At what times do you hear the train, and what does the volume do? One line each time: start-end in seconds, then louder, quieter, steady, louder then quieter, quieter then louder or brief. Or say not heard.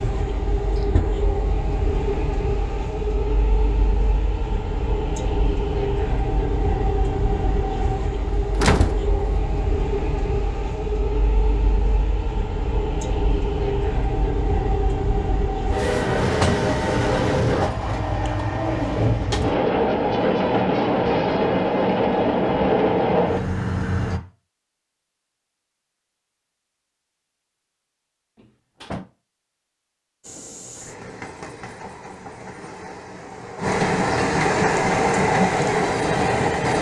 0.0-24.2 louder
30.2-36.7 louder.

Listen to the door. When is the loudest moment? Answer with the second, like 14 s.
9 s.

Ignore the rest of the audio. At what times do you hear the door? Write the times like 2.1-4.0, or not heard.
8.6-9.1, 15.8-16.7, 28.4-29.1.